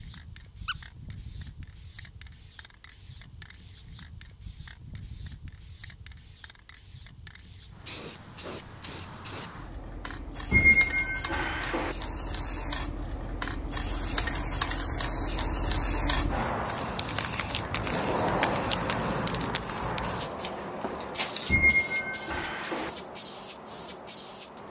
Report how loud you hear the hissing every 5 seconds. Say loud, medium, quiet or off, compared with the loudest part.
quiet, quiet, medium, loud, medium.